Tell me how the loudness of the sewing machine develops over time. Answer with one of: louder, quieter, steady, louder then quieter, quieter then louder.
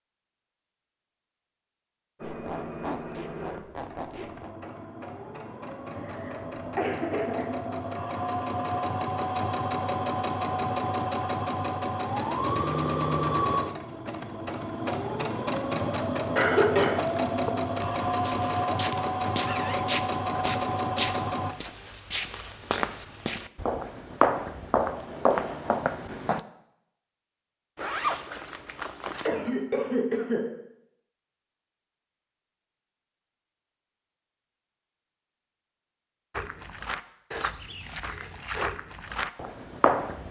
louder.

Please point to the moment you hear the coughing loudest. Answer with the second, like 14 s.
17 s.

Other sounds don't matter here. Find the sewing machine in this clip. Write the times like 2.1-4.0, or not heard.
2.1-21.6.